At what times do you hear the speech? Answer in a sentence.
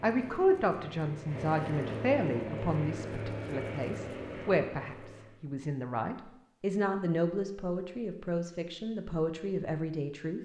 The speech can be heard from 0.0 to 10.4 s.